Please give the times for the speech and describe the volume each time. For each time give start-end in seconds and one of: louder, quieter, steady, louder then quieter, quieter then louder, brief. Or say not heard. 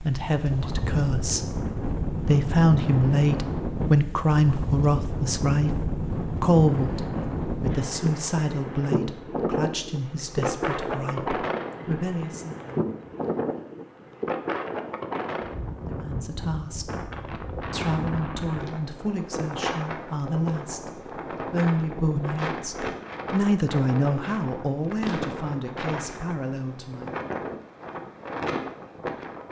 0.0-12.7 quieter
15.8-27.2 louder then quieter.